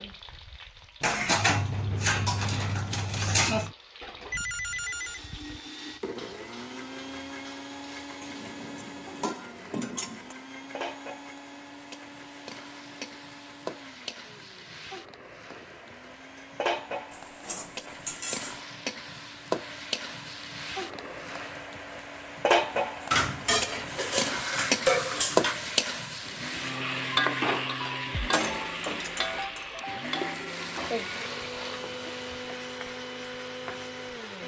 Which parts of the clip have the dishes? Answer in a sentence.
You can hear the dishes from 1.0 to 3.7 s, from 8.2 to 10.3 s, from 17.1 to 18.6 s, from 23.1 to 25.6 s and from 28.3 to 29.8 s.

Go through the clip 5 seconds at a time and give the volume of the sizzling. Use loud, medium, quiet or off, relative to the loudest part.
quiet, quiet, quiet, medium, loud, loud, medium.